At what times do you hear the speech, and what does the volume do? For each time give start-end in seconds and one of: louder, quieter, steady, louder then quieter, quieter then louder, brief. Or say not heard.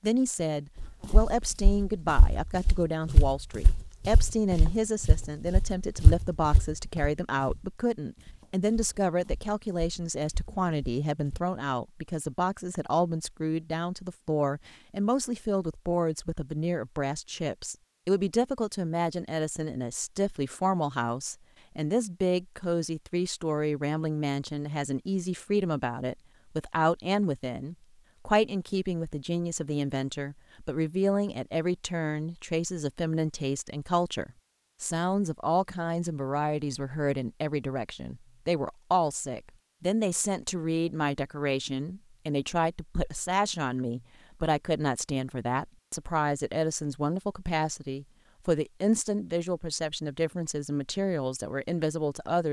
0.0-52.4 steady.